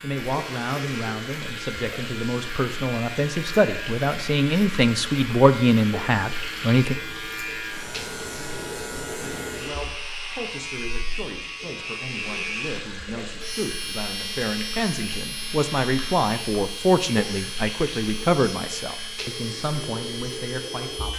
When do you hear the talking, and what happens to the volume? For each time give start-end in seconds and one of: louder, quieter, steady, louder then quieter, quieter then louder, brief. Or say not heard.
0.0-7.0 louder
9.5-21.1 louder then quieter.